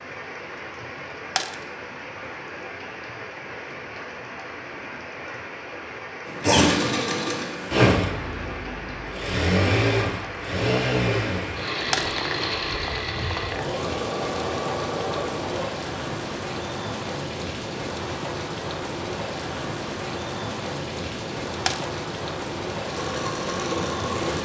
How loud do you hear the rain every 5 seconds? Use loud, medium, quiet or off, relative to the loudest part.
medium, medium, loud, loud, loud.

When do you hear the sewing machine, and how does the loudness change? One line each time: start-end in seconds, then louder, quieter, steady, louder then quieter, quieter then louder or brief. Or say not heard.
6.2-15.7 quieter
22.8-24.4 brief.